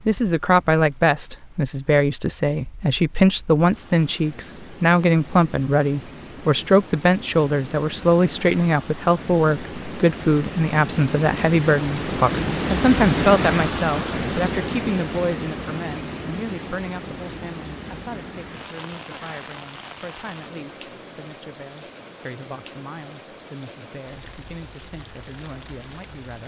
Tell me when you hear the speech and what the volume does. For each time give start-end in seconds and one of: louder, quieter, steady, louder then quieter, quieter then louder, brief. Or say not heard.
0.1-26.4 quieter.